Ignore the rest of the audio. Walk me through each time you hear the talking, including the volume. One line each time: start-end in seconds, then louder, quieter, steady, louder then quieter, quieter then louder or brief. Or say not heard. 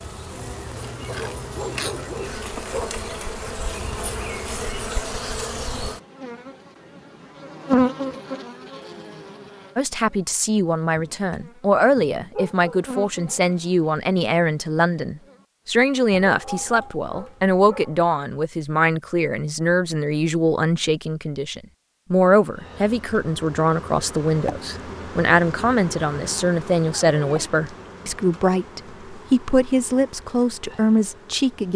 9.8-31.7 steady.